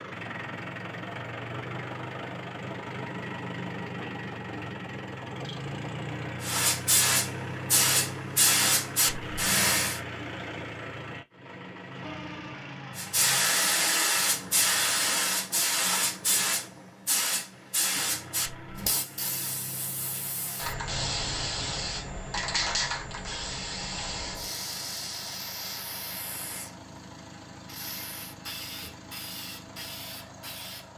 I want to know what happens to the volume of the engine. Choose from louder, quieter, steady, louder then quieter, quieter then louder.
quieter.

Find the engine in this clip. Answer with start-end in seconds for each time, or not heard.
0.0-30.9.